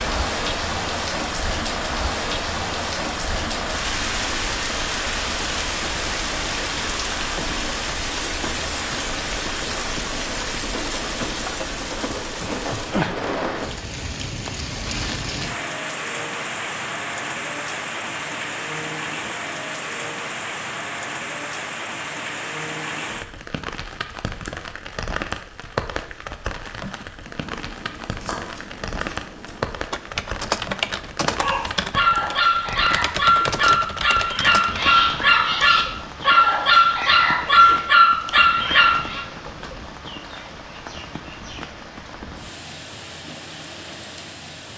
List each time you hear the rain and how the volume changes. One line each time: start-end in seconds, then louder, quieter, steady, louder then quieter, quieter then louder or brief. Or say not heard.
0.0-44.7 quieter.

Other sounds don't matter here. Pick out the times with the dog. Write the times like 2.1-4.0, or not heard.
31.2-39.2.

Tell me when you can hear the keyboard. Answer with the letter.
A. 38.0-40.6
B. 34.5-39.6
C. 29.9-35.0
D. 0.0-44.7
C.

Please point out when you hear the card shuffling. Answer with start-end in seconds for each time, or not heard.
27.2-29.8.